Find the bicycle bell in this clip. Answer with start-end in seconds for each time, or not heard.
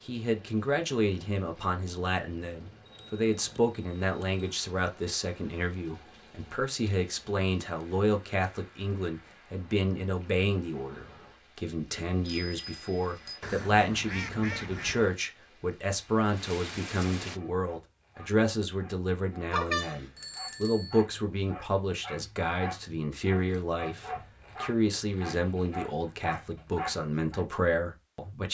2.9-4.5, 11.9-13.4, 19.5-21.0.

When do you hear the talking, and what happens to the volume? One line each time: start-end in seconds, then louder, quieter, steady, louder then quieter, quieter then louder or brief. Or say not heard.
0.0-28.5 steady.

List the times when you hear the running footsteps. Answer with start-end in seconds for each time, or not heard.
not heard.